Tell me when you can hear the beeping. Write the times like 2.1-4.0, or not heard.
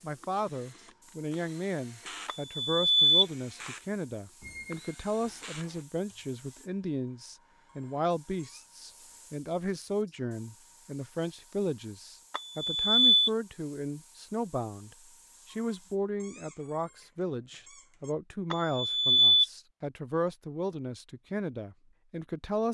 2.2-3.7, 12.3-13.3, 18.5-19.4.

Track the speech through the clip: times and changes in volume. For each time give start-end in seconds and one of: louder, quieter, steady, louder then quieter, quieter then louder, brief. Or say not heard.
0.0-22.6 steady.